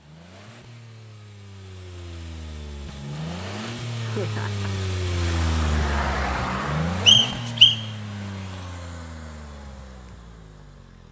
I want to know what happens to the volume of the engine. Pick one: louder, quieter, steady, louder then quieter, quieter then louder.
louder then quieter.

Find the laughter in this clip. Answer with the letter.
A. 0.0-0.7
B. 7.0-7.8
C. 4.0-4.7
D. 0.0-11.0
C.